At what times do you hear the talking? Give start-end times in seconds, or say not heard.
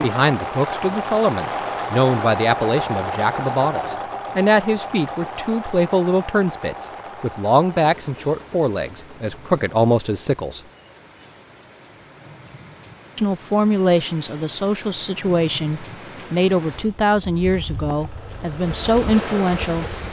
0.0-10.6, 13.2-19.9.